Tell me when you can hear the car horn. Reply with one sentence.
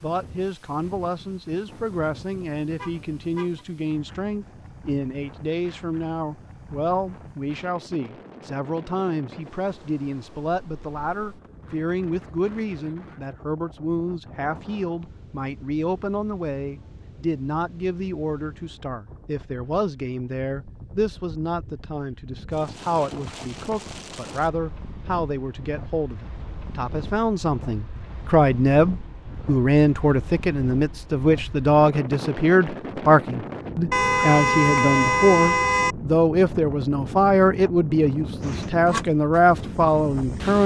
You can hear the car horn from 2.8 to 3.6 s and from 33.9 to 36.0 s.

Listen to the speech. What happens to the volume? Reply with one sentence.
The volume of the speech goes up.